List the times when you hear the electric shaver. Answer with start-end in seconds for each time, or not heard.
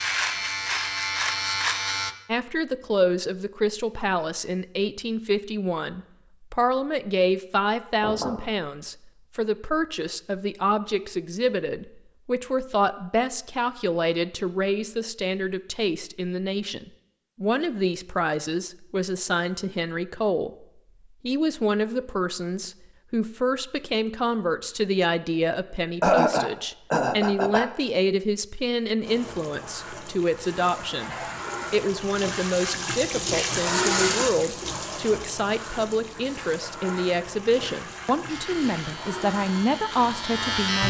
0.0-2.1, 38.2-40.8.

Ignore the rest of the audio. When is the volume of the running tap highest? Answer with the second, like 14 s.
34 s.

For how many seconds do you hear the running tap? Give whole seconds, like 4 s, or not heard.
12 s.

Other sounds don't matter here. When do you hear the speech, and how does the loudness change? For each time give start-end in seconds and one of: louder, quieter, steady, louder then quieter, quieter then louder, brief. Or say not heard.
2.2-20.5 steady
21.2-40.8 steady.